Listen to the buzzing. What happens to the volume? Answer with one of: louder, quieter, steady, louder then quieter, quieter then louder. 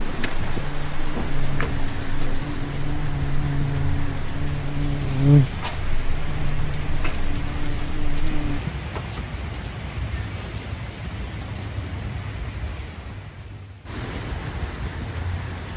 louder then quieter.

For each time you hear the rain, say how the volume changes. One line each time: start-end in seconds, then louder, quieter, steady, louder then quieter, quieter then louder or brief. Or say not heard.
0.0-15.7 steady.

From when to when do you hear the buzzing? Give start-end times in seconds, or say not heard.
0.0-8.6.